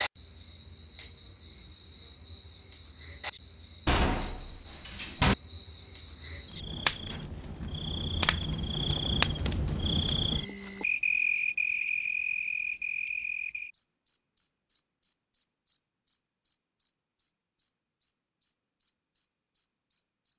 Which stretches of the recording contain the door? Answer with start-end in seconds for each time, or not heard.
3.9-5.3.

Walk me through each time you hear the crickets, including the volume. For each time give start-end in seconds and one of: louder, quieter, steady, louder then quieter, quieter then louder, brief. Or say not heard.
0.0-20.3 louder then quieter.